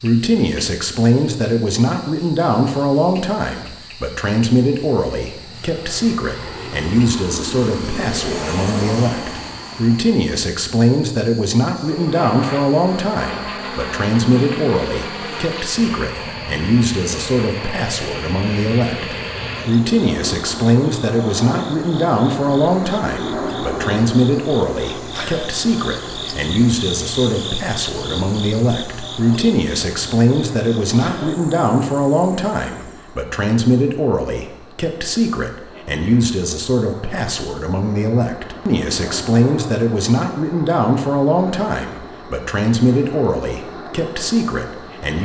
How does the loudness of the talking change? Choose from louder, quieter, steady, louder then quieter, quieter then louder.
steady.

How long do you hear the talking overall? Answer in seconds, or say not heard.
45 s.